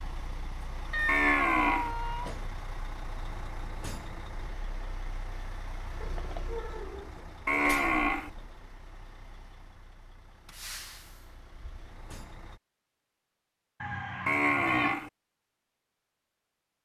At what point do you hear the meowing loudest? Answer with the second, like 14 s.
1 s.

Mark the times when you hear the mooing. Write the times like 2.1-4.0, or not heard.
1.1-1.9, 7.5-8.3, 14.2-15.1.